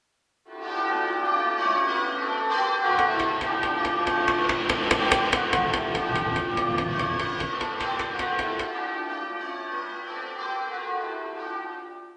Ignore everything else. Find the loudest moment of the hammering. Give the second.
5 s.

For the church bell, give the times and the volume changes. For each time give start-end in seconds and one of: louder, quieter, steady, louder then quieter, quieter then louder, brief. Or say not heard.
0.5-12.1 quieter.